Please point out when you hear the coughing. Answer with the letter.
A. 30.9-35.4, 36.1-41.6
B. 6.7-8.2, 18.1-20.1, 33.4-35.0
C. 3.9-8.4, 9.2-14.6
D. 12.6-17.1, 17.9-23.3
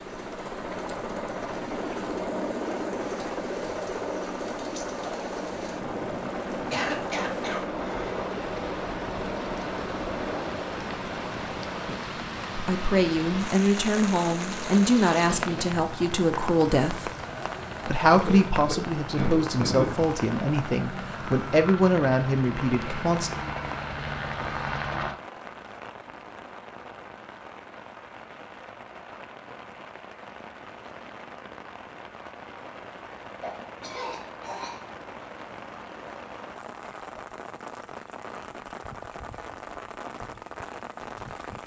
B.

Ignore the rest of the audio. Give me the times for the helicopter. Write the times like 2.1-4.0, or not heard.
0.0-25.1.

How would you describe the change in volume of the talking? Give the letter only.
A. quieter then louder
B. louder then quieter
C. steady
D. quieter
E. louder
C.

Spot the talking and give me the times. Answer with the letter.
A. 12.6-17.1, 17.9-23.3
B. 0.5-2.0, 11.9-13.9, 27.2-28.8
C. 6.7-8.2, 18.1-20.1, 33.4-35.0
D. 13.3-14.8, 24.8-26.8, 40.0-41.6
A.